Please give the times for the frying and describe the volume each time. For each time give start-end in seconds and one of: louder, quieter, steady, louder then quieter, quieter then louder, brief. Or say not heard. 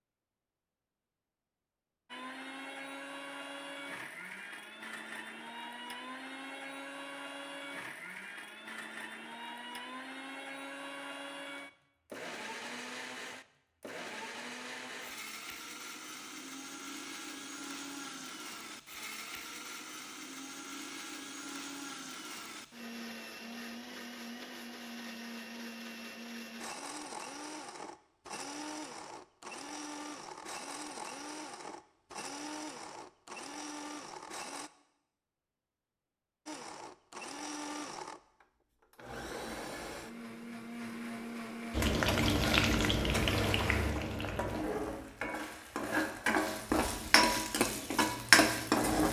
41.7-49.0 quieter then louder.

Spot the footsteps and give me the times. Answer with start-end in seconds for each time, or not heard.
not heard.